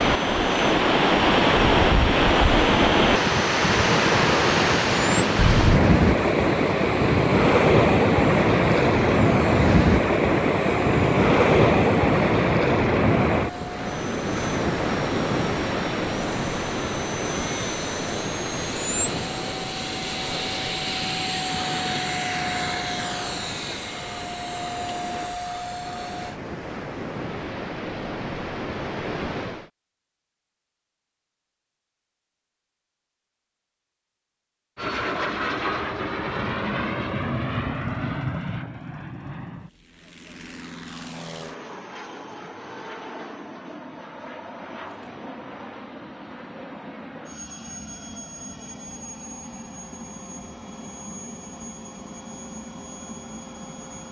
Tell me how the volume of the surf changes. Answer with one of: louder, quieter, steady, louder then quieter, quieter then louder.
quieter.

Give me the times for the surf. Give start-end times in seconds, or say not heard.
0.0-29.7.